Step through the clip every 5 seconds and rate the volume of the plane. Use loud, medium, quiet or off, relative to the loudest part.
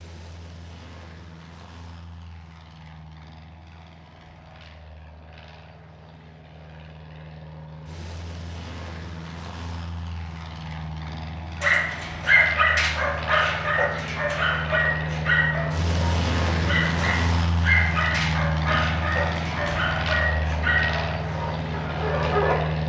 quiet, quiet, medium, loud, loud.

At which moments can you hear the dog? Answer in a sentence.
You can hear the dog from 11.6 to 22.6 s.